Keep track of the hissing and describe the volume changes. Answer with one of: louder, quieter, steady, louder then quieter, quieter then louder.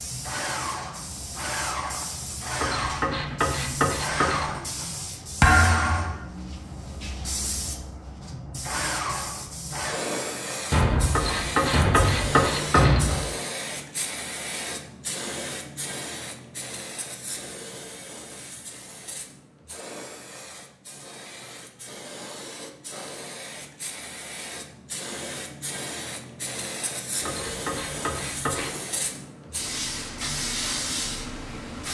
quieter then louder.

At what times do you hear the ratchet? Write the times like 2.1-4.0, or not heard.
2.5-4.6, 11.1-13.2, 27.2-28.8.